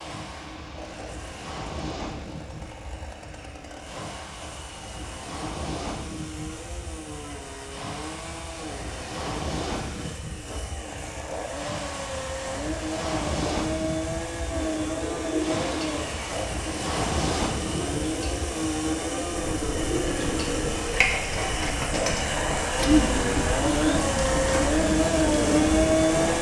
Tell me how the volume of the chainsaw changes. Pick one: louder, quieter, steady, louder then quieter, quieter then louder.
louder.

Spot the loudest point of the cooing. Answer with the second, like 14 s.
23 s.